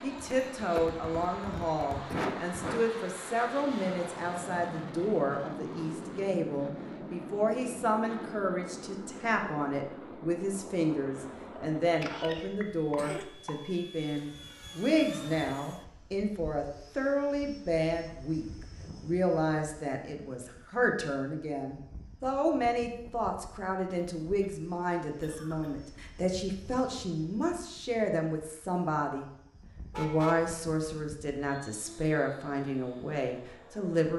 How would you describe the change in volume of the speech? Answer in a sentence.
The volume of the speech stays about the same.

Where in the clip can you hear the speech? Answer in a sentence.
You can hear the speech from 0.0 to 29.2 s and from 29.9 to 34.1 s.